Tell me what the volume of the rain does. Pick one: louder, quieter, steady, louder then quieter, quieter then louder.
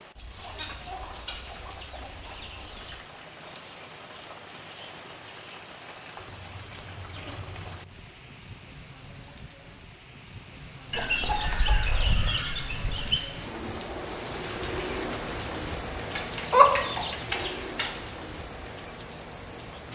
louder.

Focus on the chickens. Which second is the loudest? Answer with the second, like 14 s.
17 s.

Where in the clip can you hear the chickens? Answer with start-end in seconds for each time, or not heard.
0.1-3.0, 6.2-7.8, 10.9-13.2, 16.1-17.9.